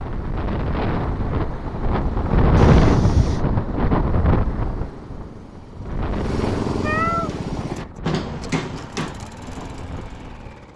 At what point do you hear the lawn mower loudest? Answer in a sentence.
The loudest moment of the lawn mower is at 7 seconds.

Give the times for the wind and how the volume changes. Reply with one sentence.
The wind can be heard from 0.0 to 10.7 s, getting louder then quieter.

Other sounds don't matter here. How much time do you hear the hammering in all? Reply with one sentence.
The hammering can be heard for 2 seconds in total.